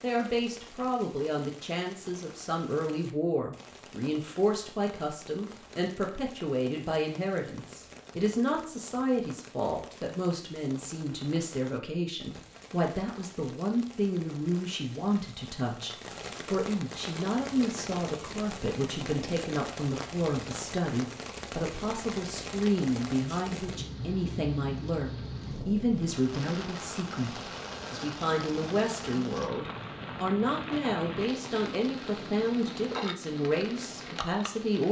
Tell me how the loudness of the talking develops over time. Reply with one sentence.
The loudness of the talking stays about the same.